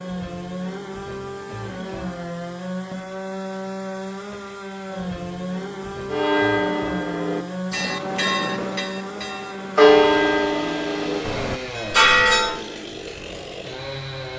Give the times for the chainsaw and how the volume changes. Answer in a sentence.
You can hear the chainsaw from 0.0 to 14.3 s, at a steady volume.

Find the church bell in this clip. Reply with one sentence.
The church bell can be heard from 6.1 to 12.6 s.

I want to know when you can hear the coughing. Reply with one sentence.
You can't hear the coughing here.